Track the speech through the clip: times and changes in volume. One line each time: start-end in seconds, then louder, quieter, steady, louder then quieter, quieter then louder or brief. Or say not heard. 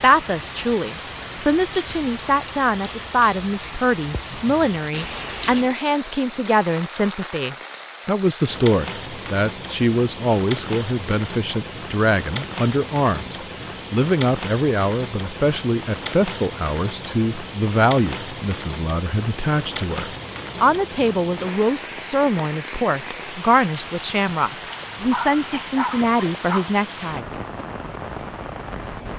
0.0-27.4 steady.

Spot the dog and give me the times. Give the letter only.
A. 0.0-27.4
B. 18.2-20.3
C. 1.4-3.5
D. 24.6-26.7
D.